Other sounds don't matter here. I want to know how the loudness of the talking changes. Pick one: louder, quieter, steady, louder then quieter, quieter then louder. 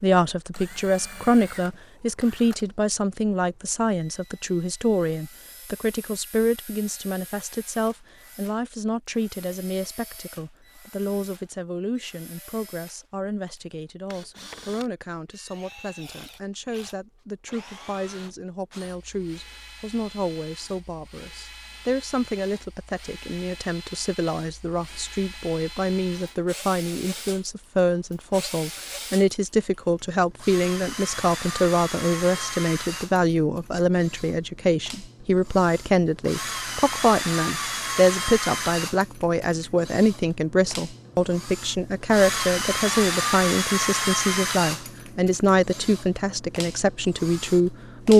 quieter then louder.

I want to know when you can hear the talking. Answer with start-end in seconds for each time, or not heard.
0.0-48.1.